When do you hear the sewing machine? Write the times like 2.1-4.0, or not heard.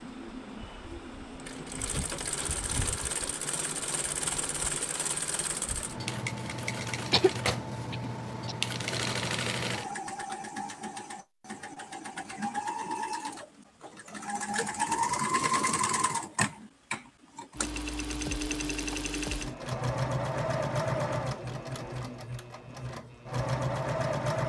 0.0-24.4.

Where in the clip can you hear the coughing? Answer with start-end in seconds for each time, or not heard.
7.1-8.6.